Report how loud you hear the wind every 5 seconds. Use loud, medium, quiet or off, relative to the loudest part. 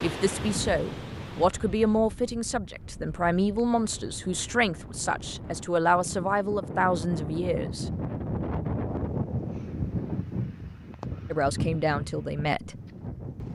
medium, loud, loud.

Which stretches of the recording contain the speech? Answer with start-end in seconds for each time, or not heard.
0.0-7.8, 11.3-12.8.